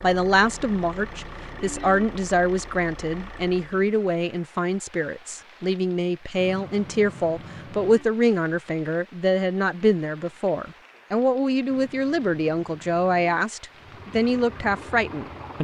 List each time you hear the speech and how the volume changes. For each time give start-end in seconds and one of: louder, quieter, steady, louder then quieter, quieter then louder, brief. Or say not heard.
0.0-15.5 steady.